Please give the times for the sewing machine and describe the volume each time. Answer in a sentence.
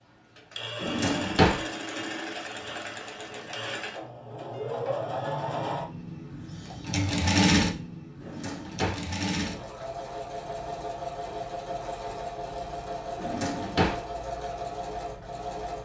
The sewing machine can be heard from 0.1 to 15.8 s, getting louder then quieter.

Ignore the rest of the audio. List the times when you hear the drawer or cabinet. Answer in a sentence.
You can hear the drawer or cabinet from 0.8 to 1.6 s, from 8.2 to 9.1 s and from 13.2 to 14.0 s.